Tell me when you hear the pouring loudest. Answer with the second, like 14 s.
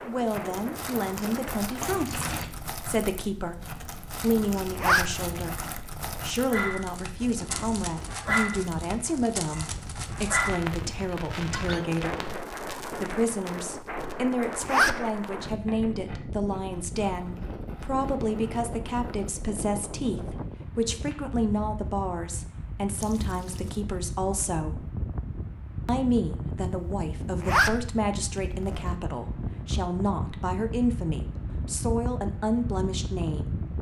2 s.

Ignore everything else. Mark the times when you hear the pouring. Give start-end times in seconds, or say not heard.
1.8-2.5, 22.9-23.8.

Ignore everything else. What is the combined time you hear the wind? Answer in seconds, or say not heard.
34 s.